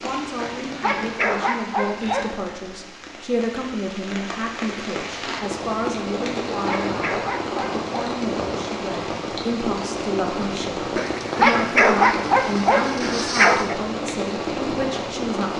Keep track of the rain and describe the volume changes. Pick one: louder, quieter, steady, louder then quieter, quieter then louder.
louder.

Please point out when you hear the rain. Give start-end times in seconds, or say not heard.
0.0-15.5.